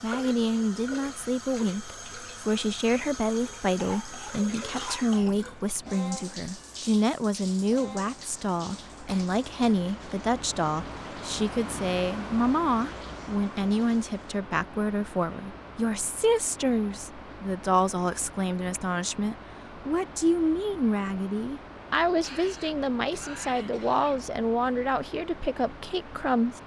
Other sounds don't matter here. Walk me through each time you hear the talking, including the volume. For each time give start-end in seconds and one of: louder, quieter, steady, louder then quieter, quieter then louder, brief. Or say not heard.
0.0-26.6 steady.